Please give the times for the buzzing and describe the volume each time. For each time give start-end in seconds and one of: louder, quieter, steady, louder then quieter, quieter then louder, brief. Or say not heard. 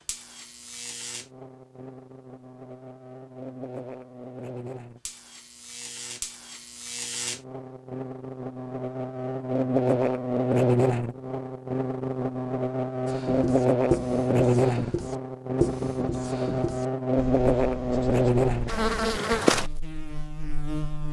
0.0-21.0 louder.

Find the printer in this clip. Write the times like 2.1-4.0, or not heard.
not heard.